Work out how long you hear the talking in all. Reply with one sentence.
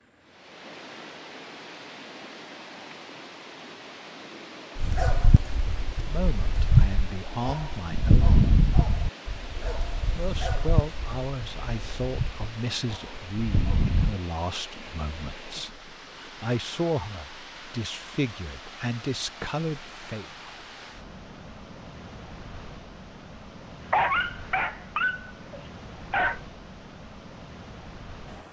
You can hear the talking for 12 seconds altogether.